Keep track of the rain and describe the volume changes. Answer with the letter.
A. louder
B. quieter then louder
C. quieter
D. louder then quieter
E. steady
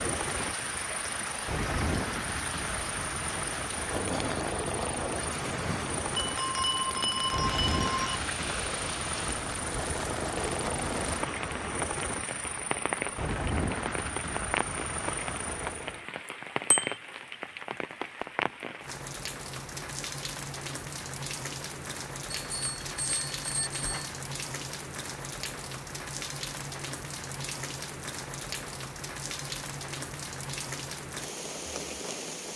E.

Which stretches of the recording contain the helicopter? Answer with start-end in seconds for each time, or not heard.
0.0-16.1.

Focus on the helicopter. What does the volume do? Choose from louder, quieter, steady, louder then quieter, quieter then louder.
steady.